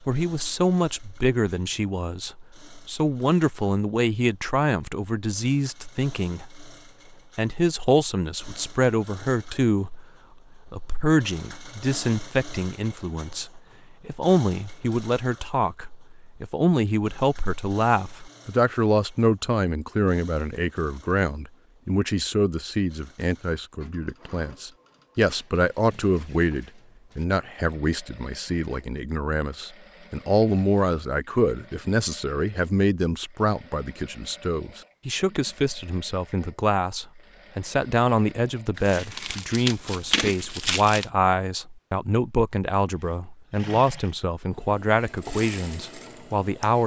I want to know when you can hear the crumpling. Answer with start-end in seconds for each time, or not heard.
38.8-41.0.